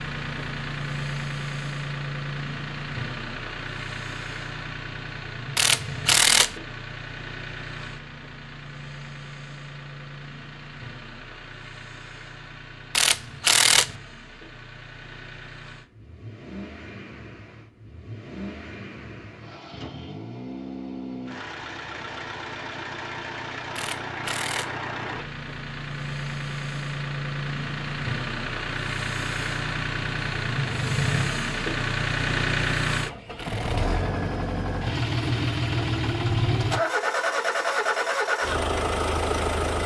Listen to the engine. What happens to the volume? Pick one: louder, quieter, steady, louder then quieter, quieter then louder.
quieter then louder.